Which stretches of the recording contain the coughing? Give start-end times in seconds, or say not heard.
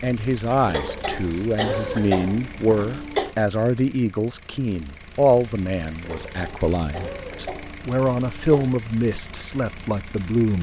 0.7-3.4, 6.0-8.8.